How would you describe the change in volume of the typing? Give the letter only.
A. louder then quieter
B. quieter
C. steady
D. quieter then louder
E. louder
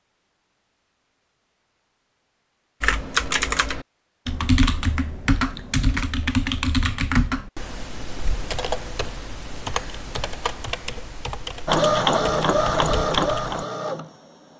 B.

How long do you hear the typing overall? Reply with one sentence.
The typing can be heard for 11 seconds in total.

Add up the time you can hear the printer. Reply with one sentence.
You can hear the printer for 3 seconds altogether.